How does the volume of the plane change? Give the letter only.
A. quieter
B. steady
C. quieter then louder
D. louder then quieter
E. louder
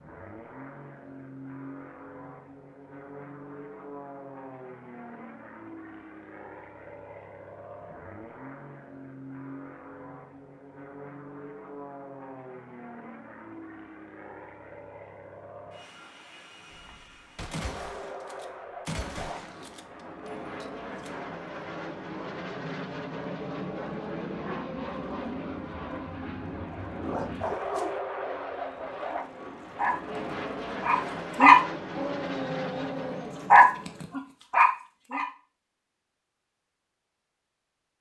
E.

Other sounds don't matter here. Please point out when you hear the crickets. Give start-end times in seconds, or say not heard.
not heard.